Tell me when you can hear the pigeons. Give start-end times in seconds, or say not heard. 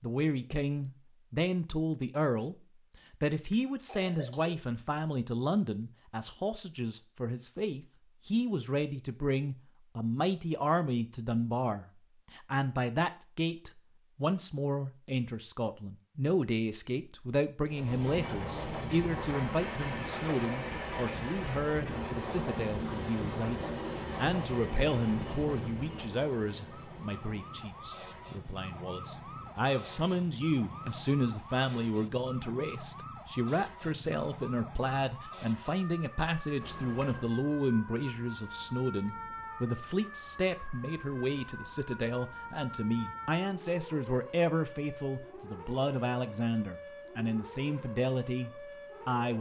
not heard.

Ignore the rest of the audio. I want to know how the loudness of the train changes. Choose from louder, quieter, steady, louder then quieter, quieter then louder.
quieter.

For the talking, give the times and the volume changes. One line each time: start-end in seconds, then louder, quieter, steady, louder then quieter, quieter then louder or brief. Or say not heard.
0.0-49.3 steady.